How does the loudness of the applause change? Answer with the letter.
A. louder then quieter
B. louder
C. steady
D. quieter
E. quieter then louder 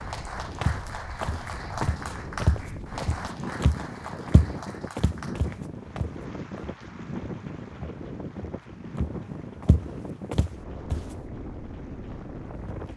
D.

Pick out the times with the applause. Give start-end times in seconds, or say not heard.
0.0-12.9.